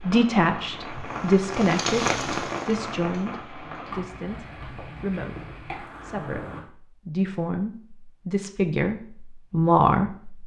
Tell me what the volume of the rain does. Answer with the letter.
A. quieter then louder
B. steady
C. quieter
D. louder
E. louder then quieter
E.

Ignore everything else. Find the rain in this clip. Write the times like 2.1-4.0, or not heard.
0.0-6.6.